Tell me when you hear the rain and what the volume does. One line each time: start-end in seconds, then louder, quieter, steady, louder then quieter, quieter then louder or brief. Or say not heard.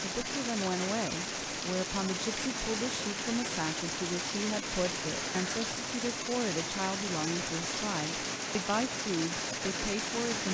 0.0-10.4 steady.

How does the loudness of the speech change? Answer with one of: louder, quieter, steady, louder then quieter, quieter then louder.
steady.